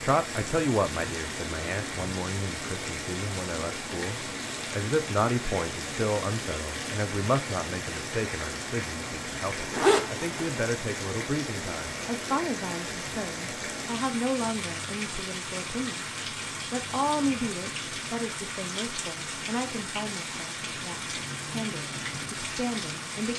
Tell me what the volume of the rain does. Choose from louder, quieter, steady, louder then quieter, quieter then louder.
steady.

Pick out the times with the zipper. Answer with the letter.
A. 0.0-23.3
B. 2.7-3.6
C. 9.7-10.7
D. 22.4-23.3
C.